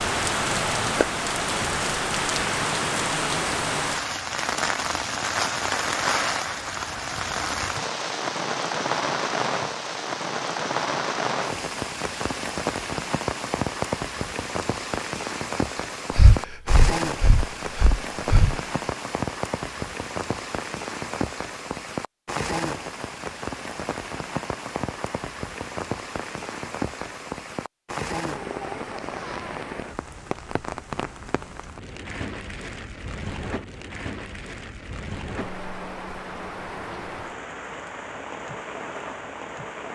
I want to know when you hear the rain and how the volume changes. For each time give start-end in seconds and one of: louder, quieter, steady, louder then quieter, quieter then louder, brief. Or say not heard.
0.0-39.9 quieter.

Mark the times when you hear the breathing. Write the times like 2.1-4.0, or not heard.
16.1-18.6.